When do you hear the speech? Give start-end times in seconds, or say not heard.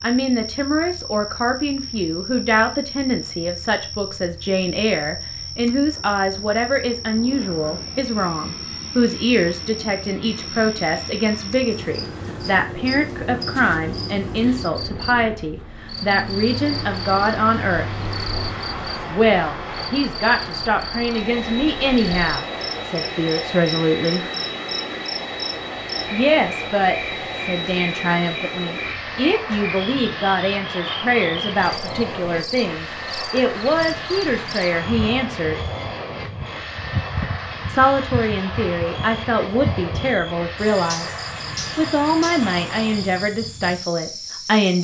0.0-17.9, 19.1-24.2, 26.1-35.5, 37.6-44.7.